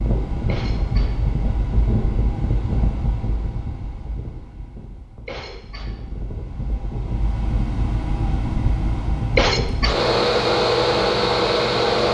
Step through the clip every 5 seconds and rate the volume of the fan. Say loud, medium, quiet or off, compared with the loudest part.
medium, medium, loud.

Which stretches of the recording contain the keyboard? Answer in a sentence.
The keyboard can't be heard in this clip.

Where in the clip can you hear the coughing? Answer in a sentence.
The coughing can be heard from 0.5 to 1.1 s, from 5.2 to 5.8 s and from 9.3 to 9.9 s.